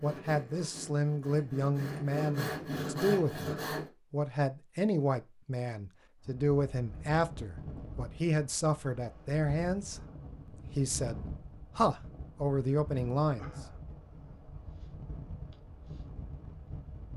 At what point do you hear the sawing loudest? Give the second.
3 s.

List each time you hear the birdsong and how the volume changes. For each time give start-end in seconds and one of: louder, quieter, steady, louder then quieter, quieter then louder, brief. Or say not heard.
not heard.